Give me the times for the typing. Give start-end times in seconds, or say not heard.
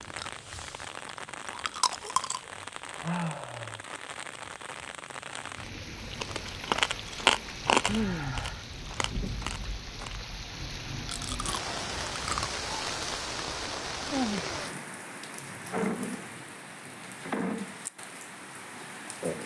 not heard.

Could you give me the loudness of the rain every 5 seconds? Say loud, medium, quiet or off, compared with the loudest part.
medium, medium, loud, loud.